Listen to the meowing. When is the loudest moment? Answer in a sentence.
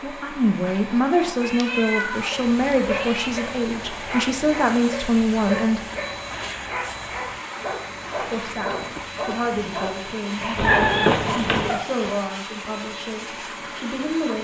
The loudest moment of the meowing is at 11 seconds.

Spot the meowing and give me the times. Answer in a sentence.
You can hear the meowing from 0.7 to 3.3 s and from 10.6 to 11.8 s.